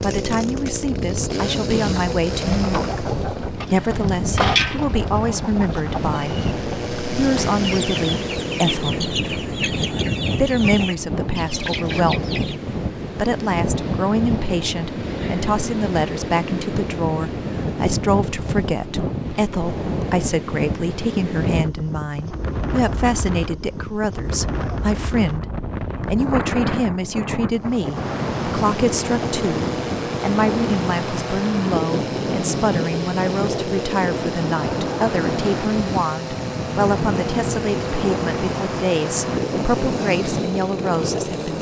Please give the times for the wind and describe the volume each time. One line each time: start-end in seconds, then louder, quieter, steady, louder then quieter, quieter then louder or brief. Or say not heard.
0.0-41.5 steady.